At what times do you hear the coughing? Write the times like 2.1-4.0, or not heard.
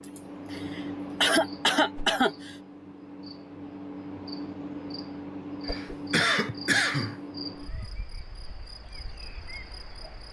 0.0-2.5, 5.7-7.2.